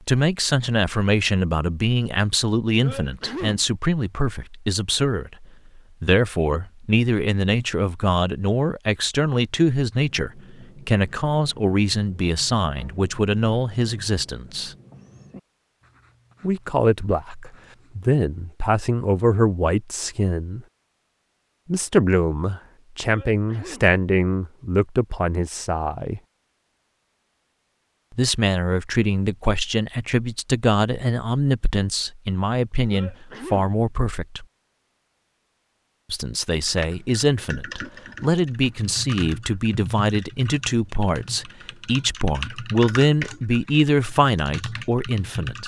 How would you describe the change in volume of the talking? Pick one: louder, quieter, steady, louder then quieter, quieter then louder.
steady.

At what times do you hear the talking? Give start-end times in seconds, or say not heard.
0.1-14.8, 16.4-20.6, 21.6-26.2, 28.1-34.5, 36.1-45.6.